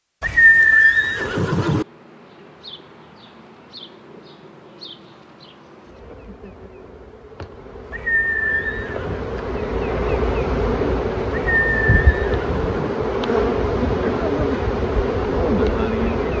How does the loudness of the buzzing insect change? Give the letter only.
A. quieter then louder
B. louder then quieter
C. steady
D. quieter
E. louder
E.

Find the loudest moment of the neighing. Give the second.
1 s.